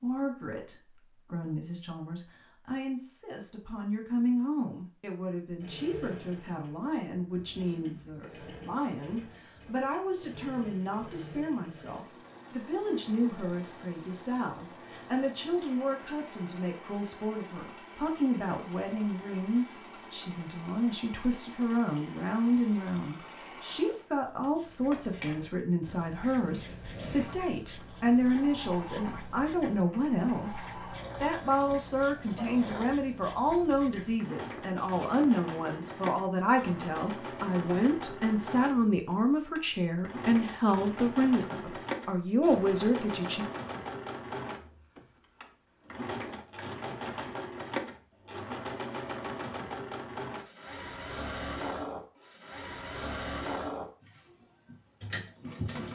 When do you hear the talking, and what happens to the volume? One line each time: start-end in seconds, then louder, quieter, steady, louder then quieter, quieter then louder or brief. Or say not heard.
0.0-43.5 louder.